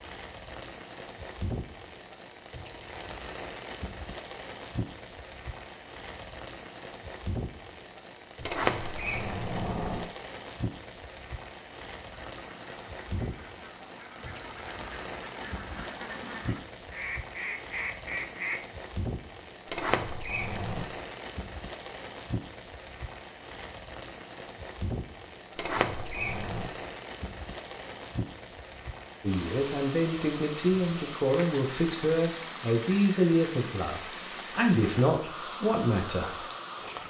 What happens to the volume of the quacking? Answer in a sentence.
The volume of the quacking goes up.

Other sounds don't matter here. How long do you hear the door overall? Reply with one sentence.
The door can be heard for 4 seconds in total.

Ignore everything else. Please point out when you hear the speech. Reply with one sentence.
You can hear the speech from 29.2 to 36.4 s.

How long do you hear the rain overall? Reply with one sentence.
The rain can be heard for 37 seconds in total.